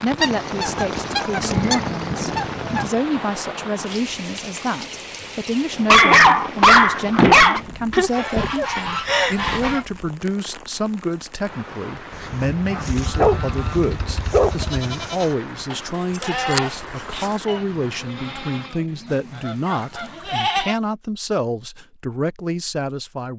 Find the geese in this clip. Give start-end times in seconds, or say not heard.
0.1-2.9, 7.9-9.8, 12.6-13.8, 19.1-20.4.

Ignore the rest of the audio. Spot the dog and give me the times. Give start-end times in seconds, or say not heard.
5.8-7.6, 13.0-14.8.